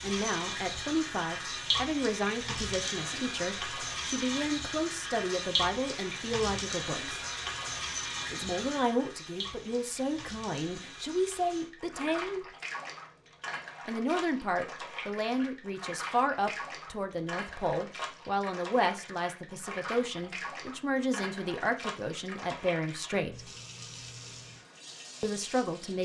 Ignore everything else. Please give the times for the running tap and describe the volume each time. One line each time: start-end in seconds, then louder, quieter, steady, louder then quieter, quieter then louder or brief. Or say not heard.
0.0-26.0 quieter.